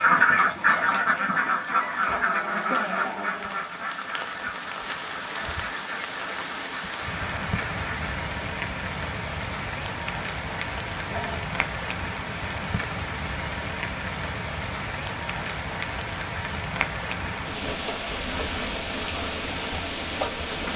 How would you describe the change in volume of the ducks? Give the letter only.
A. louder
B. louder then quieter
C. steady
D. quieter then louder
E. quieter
E.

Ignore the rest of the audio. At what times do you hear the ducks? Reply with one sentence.
The ducks can be heard from 0.0 to 8.1 s.